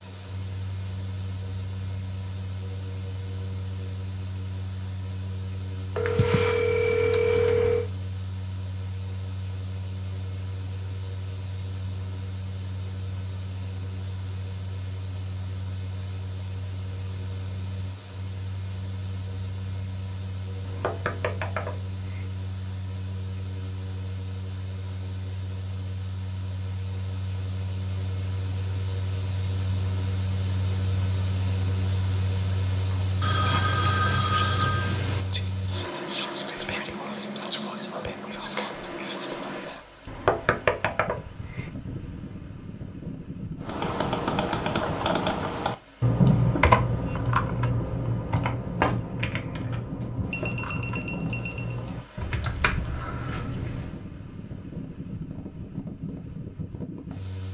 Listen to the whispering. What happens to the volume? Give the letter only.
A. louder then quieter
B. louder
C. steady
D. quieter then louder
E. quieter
B.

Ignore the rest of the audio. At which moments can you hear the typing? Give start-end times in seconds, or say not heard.
43.6-54.0.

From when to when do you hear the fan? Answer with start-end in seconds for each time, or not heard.
0.0-57.4.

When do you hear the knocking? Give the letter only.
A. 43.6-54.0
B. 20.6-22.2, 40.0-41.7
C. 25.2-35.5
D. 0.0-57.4
B.